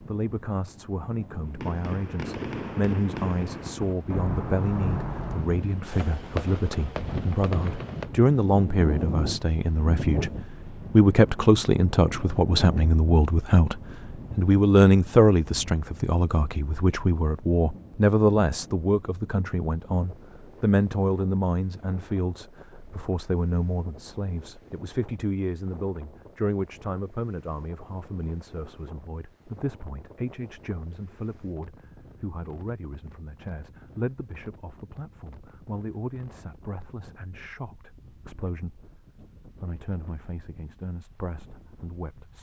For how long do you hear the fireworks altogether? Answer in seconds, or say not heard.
7 s.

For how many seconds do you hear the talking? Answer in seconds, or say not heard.
42 s.